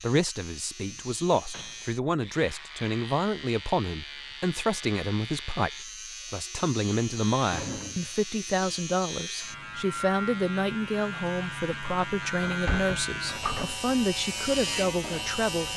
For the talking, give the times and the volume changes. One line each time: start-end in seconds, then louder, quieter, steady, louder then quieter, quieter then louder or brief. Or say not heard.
0.0-15.7 steady.